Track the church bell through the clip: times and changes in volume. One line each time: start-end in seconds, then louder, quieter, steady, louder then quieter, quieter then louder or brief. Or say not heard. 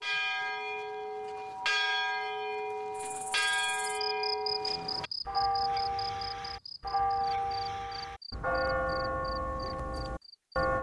0.0-10.7 steady.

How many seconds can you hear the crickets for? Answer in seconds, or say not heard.
8 s.